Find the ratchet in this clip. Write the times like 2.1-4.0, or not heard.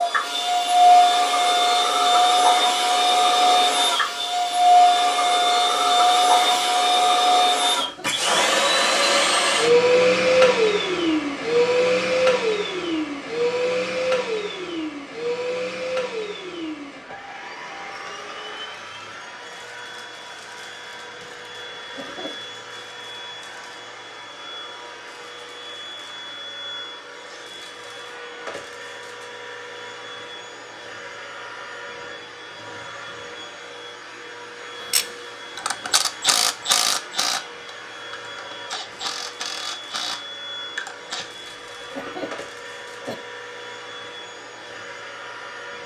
0.2-6.7, 34.8-41.2.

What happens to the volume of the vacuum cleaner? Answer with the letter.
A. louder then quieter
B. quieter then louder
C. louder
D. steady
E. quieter
E.